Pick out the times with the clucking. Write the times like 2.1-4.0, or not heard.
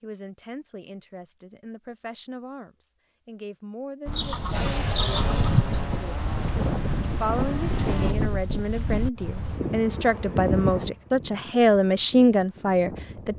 4.1-5.7.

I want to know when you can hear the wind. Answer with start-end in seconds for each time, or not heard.
4.0-13.3.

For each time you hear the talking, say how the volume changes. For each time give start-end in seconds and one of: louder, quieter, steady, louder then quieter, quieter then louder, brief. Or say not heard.
0.0-13.3 louder.